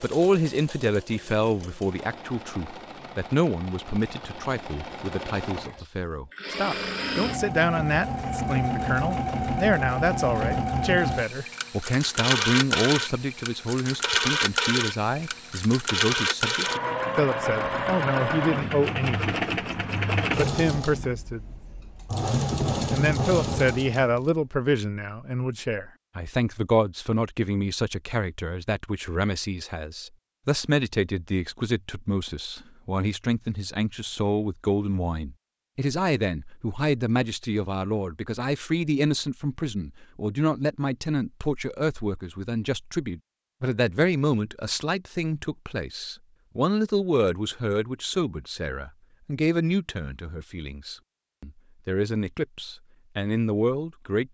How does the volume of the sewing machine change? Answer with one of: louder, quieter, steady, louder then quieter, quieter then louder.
louder.